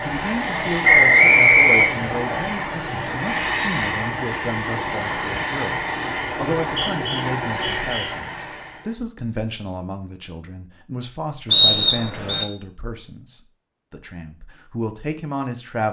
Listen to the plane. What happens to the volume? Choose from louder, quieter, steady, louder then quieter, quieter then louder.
steady.